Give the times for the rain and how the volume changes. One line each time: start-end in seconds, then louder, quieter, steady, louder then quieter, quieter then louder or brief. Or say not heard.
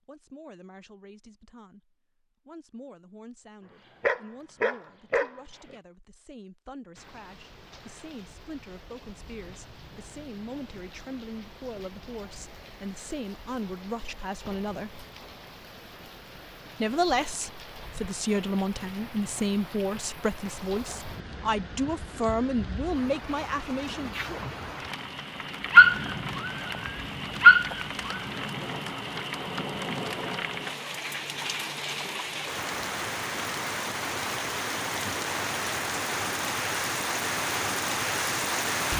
7.0-38.9 louder.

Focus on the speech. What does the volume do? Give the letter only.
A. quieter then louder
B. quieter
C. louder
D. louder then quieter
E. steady
C.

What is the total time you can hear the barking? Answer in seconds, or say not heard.
4 s.